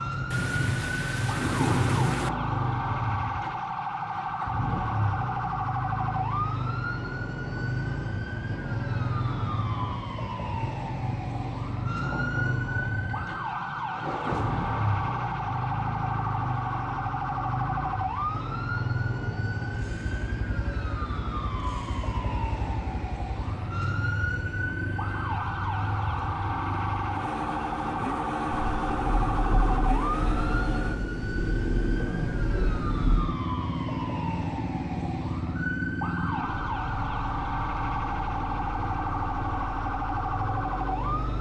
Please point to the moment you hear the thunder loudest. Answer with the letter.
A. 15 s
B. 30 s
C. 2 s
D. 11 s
C.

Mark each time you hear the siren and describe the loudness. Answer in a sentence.
You can hear the siren from 0.0 to 41.3 s, at a steady volume.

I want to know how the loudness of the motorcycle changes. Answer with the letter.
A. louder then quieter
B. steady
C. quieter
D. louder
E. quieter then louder
B.